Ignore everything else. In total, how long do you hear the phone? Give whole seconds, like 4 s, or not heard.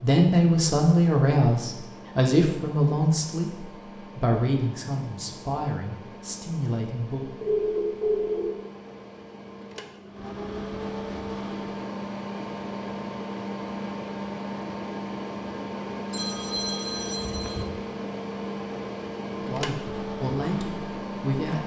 3 s.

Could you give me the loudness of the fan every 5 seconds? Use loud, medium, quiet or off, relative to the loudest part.
medium, medium, loud, loud, loud.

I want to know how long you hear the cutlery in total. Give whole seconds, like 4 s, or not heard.
not heard.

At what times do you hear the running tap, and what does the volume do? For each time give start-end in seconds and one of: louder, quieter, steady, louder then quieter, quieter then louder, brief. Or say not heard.
not heard.